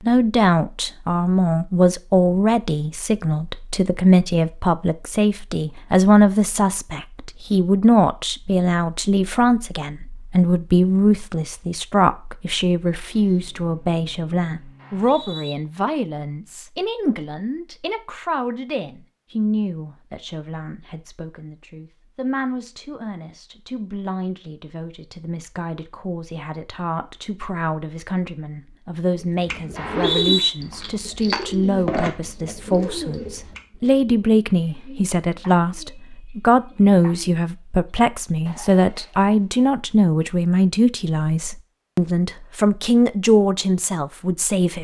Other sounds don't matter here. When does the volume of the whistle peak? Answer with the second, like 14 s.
30 s.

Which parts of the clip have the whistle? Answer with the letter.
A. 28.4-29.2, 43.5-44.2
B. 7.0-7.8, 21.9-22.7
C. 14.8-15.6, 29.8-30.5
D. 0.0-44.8
C.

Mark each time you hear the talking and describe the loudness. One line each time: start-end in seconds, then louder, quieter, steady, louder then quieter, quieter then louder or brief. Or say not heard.
0.0-44.8 quieter then louder.